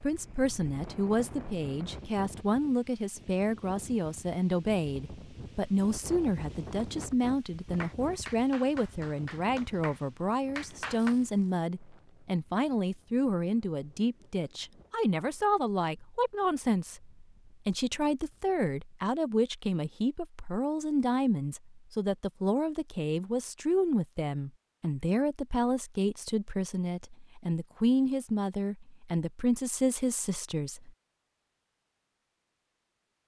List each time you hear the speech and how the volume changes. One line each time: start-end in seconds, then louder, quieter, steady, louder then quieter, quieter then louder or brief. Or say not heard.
0.0-30.9 steady.